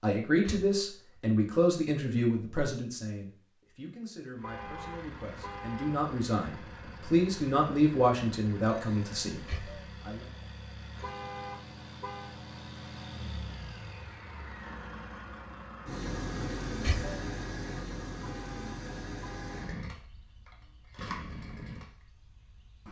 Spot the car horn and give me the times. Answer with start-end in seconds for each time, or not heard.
4.4-6.0, 11.0-12.4, 18.2-19.8.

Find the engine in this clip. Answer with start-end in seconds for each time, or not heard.
4.3-22.8.